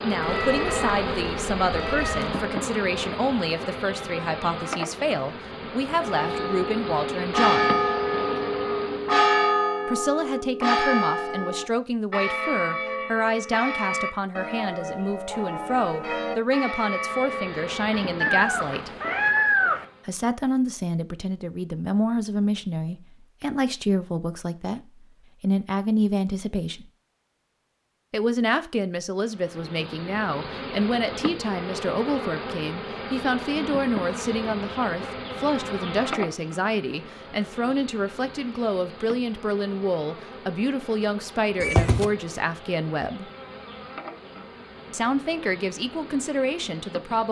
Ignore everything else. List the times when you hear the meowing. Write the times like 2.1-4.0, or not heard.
0.2-2.5, 18.2-19.9, 41.6-42.1.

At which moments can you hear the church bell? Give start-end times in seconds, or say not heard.
6.0-18.1.